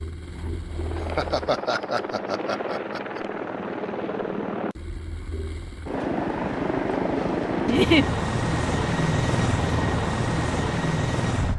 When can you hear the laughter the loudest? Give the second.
8 s.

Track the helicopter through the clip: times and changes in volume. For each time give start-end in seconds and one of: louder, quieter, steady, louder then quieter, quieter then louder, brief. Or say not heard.
0.0-11.5 louder.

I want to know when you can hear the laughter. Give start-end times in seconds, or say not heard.
0.9-3.2, 7.7-8.1.